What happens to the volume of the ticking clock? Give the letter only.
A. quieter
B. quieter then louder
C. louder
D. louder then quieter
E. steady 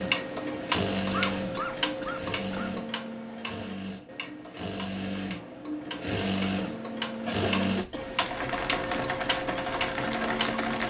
B.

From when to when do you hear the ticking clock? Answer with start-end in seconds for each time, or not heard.
0.0-10.8.